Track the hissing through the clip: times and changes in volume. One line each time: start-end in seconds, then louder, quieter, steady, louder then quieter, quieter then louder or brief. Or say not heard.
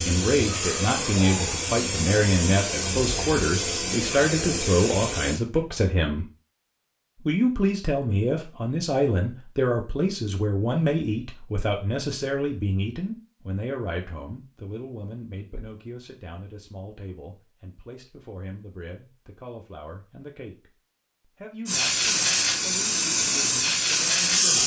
0.0-5.4 steady
21.6-24.6 brief.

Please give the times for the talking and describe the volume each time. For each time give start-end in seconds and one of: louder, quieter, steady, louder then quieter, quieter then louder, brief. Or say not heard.
0.1-6.2 steady
7.2-24.6 quieter.